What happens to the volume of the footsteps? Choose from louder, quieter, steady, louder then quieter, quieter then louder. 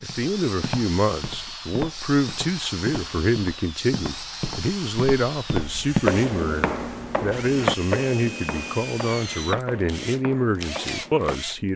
louder then quieter.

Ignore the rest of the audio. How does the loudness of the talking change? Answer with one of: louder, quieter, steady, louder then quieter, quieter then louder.
steady.